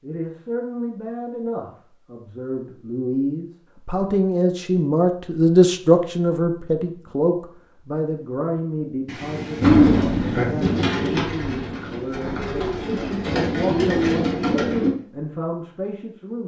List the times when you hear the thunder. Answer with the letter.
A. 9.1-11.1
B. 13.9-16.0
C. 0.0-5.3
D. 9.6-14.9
A.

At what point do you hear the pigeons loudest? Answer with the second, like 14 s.
10 s.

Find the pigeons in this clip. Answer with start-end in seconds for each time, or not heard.
9.6-14.9.